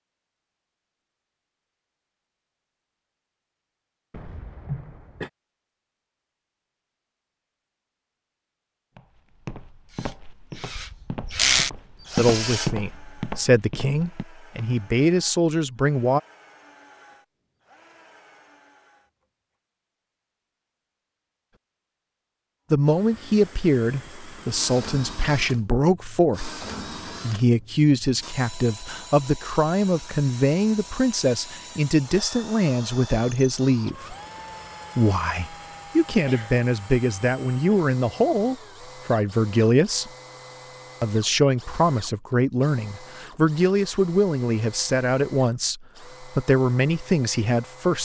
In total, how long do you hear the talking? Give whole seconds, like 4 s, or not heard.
27 s.